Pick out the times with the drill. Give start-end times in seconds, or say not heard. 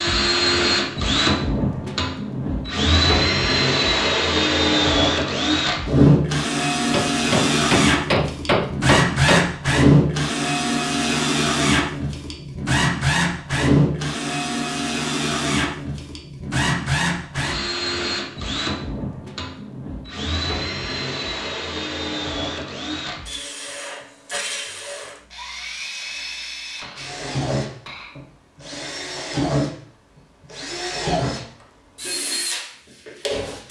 0.0-33.6.